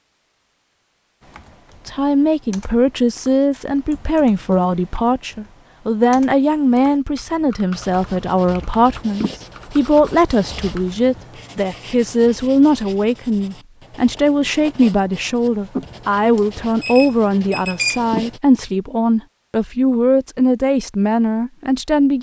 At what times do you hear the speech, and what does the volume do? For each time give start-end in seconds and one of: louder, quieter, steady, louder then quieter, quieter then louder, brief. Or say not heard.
1.9-22.1 steady.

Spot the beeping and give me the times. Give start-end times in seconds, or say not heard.
16.4-18.0.